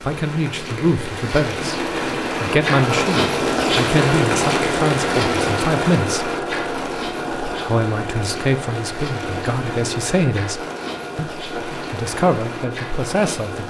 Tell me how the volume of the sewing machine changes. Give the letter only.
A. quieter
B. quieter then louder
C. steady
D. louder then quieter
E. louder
A.